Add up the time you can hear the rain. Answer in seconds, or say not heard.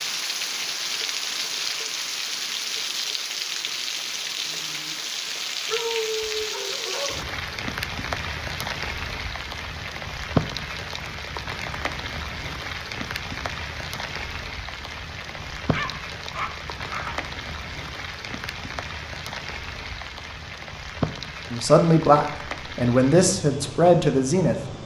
25 s.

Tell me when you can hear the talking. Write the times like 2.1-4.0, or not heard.
21.5-24.6.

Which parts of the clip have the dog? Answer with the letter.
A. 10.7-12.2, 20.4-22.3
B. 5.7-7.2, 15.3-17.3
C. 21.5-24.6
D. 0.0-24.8
B.